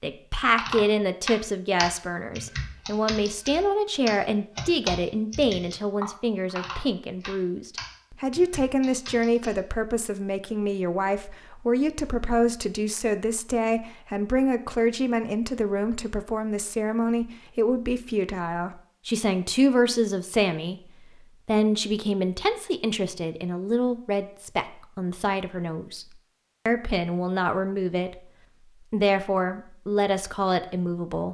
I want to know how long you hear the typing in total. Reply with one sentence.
You can hear the typing for 9 seconds altogether.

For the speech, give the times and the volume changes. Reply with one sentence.
The speech can be heard from 0.0 to 26.1 s, at a steady volume; briefly from 26.6 to 28.3 s; and briefly from 28.9 to 31.2 s.